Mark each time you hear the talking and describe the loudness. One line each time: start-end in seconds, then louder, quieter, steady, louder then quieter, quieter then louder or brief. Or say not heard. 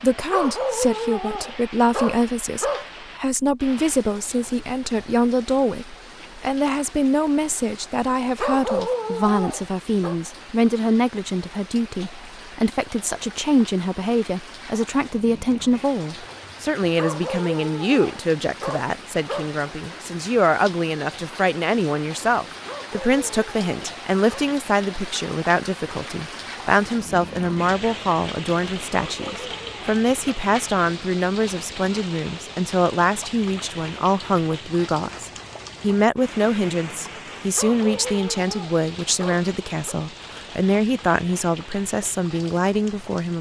0.0-43.3 steady.